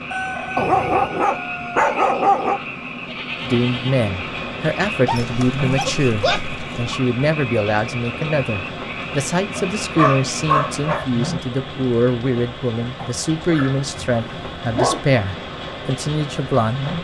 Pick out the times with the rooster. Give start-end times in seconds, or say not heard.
0.1-1.9.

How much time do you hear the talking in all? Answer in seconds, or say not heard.
13 s.